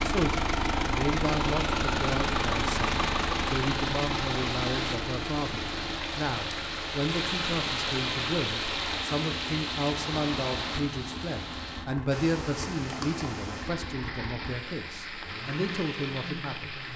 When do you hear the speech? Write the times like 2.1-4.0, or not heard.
0.0-16.8.